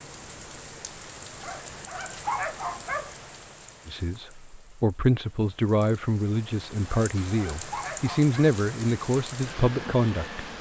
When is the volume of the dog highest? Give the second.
2 s.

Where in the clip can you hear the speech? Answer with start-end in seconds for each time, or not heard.
3.9-10.4.